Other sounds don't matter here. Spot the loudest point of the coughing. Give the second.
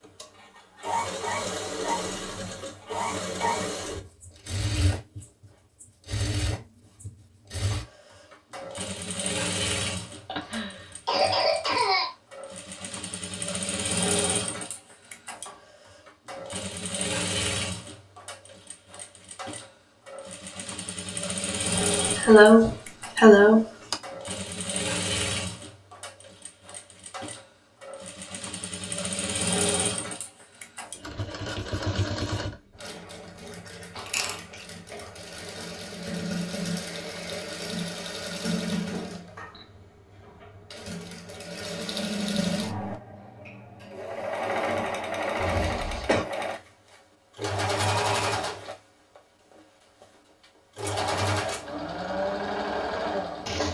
22 s.